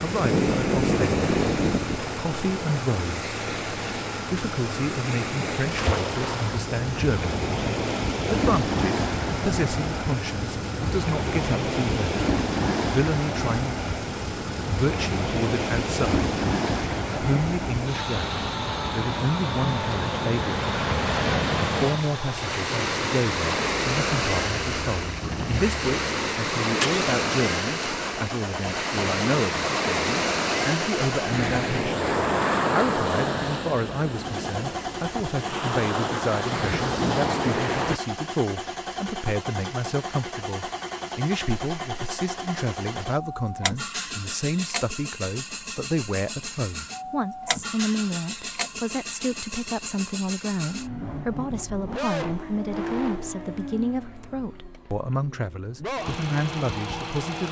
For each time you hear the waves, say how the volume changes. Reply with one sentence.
You can hear the waves from 0.0 to 38.0 s, at a steady volume.